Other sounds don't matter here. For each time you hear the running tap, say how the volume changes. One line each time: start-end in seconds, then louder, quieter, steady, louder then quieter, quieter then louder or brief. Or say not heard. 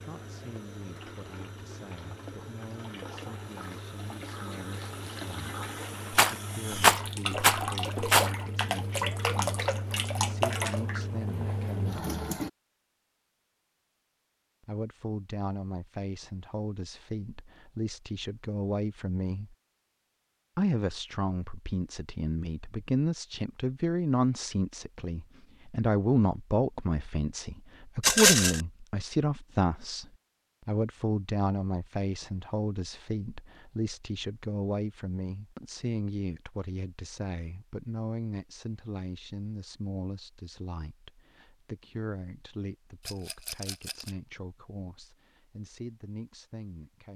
0.0-12.5 louder.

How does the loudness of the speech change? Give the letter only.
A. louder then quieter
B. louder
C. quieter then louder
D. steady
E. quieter
A.